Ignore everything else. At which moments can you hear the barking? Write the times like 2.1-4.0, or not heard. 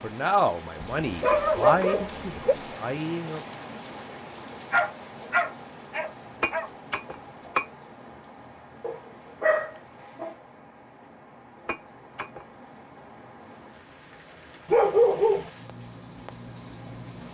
1.1-2.5, 4.7-6.7, 8.8-10.3, 14.7-15.5.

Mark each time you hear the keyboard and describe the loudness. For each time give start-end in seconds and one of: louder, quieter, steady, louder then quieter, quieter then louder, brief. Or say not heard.
not heard.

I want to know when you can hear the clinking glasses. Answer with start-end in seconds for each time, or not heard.
1.3-2.0, 6.4-7.7, 11.7-12.4.